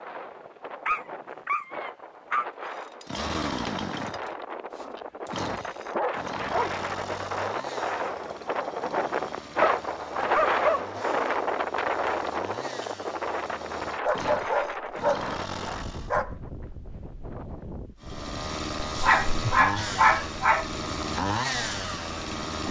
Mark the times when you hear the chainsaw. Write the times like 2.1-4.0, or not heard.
2.6-16.1, 18.0-22.6.